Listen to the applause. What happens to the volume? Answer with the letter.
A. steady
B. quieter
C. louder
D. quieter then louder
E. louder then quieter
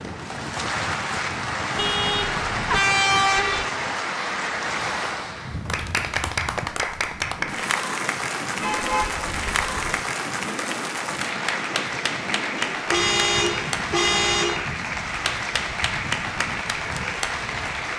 A.